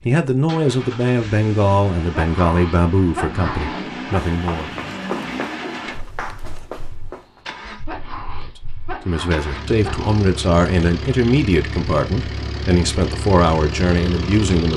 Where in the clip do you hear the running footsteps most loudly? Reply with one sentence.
The loudest moment of the running footsteps is at 5 seconds.